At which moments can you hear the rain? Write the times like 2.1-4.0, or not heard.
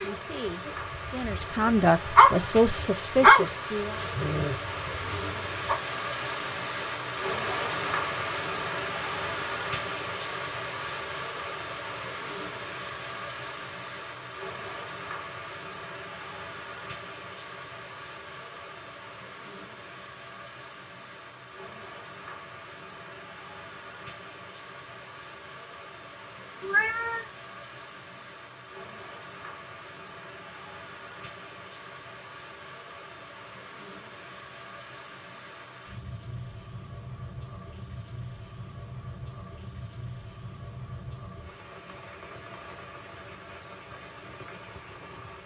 0.0-45.4.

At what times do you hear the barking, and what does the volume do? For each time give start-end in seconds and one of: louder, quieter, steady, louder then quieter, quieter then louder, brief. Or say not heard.
0.0-5.8 louder then quieter.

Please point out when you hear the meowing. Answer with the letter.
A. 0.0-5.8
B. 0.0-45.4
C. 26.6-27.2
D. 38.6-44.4
C.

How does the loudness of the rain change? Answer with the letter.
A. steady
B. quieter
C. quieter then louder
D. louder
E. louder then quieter
B.